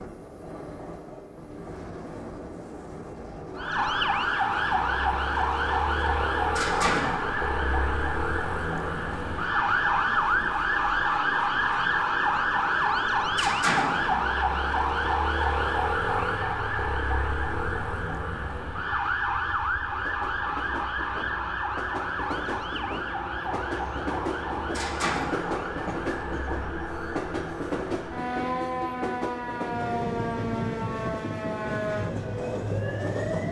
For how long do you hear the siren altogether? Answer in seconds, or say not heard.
30 s.